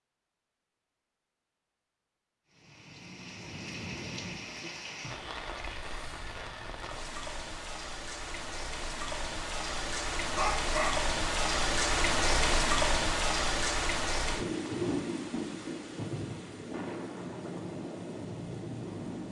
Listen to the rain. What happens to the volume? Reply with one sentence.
The loudness of the rain goes up, then down.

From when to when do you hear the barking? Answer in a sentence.
The barking can be heard from 10.3 to 11.0 s.